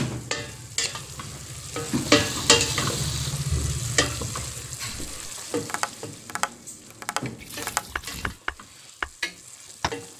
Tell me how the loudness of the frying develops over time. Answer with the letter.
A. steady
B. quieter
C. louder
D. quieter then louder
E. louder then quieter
B.